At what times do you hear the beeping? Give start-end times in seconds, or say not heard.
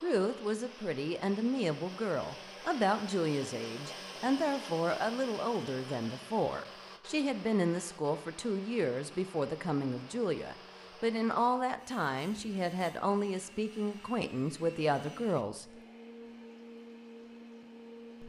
not heard.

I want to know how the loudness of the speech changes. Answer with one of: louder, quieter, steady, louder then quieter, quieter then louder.
steady.